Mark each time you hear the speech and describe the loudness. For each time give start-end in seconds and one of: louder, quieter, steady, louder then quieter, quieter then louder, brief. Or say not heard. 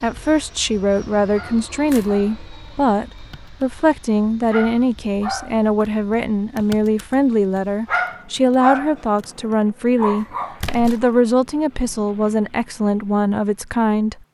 0.0-14.2 steady.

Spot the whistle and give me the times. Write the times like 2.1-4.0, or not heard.
not heard.